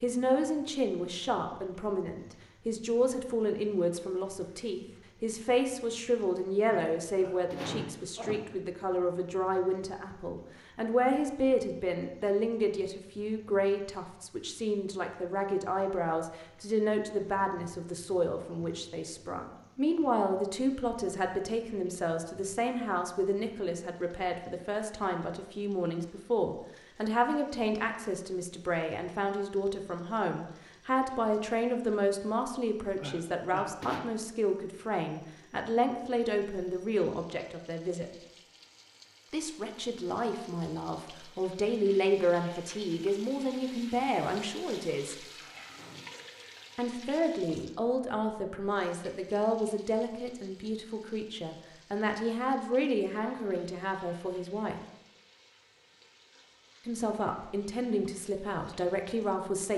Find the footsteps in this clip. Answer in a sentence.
The footsteps can't be heard in this clip.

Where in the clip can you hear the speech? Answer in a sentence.
You can hear the speech from 0.0 to 38.0 s, from 39.3 to 45.2 s, from 46.8 to 54.8 s and from 56.9 to 59.7 s.